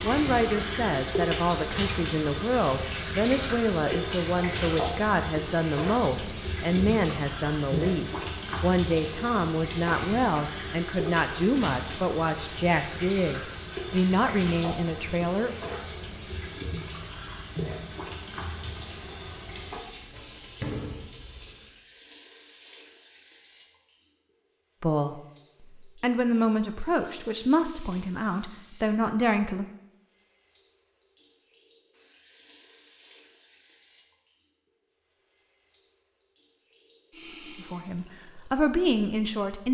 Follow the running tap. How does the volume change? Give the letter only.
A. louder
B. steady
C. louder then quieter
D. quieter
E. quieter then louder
D.